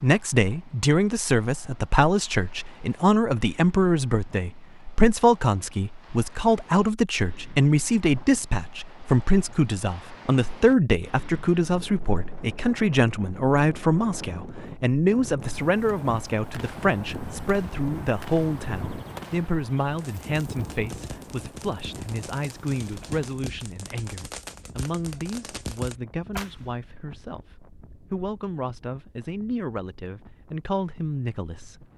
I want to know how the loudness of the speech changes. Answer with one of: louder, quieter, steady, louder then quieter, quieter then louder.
quieter.